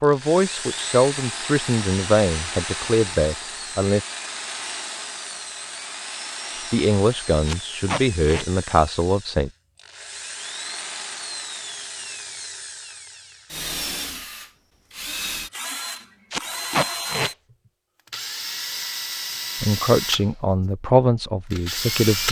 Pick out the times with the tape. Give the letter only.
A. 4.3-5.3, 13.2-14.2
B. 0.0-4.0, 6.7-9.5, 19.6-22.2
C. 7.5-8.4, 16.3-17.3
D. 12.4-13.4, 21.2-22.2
C.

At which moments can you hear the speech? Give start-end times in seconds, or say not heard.
0.0-4.0, 6.7-9.5, 19.6-22.2.